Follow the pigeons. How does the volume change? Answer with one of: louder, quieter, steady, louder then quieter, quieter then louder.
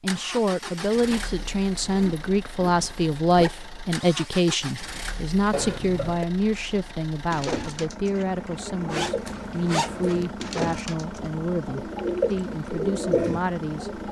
louder.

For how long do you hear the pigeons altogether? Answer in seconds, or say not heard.
7 s.